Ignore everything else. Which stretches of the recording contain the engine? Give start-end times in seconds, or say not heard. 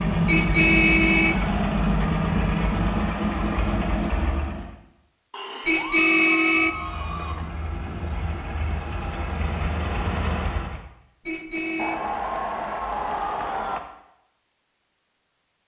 0.0-4.8, 6.6-10.8.